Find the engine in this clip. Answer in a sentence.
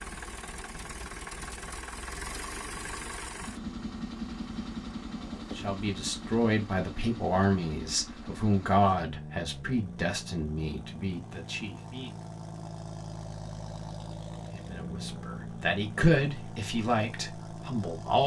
The engine can be heard from 0.0 to 18.2 s.